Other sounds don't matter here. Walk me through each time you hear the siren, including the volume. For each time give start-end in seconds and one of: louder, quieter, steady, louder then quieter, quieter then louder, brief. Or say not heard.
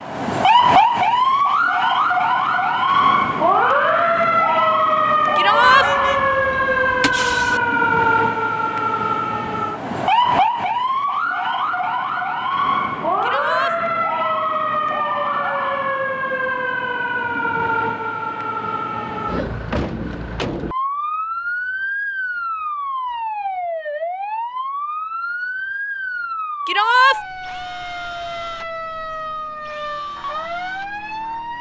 0.0-31.5 quieter.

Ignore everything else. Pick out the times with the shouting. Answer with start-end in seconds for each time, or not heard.
5.3-5.8, 13.2-13.8, 26.6-27.2.